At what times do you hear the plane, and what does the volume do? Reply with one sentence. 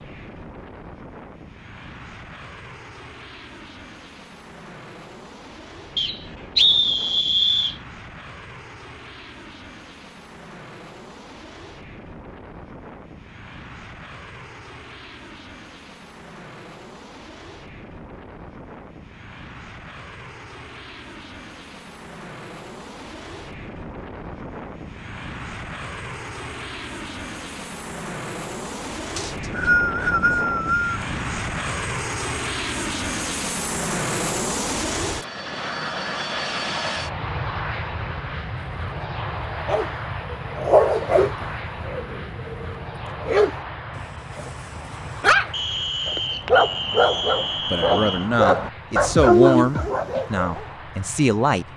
You can hear the plane from 0.0 to 51.7 s, getting louder then quieter.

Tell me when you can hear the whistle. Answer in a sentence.
The whistle can be heard from 6.0 to 7.8 s, from 29.1 to 31.0 s and from 45.5 to 48.3 s.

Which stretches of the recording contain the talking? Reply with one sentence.
The talking can be heard from 47.7 to 51.6 s.